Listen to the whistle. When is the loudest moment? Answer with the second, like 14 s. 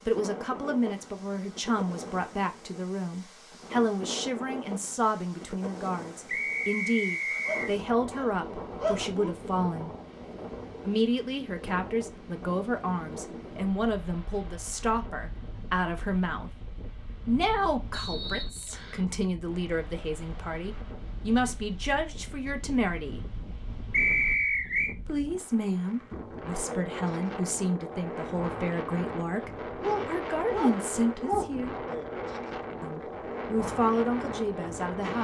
24 s.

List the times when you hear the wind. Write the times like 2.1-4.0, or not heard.
0.0-35.1.